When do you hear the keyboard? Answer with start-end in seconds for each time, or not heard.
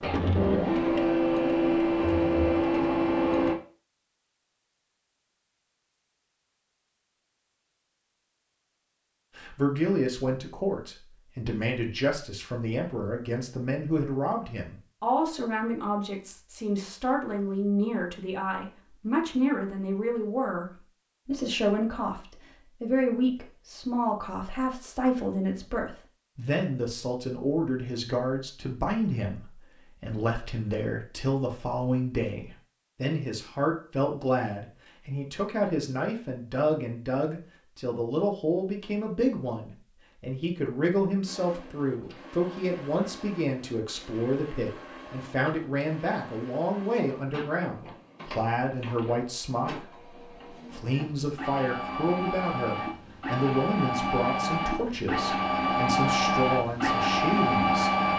not heard.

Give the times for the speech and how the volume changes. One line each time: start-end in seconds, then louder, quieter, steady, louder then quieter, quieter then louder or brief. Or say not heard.
9.3-57.9 steady.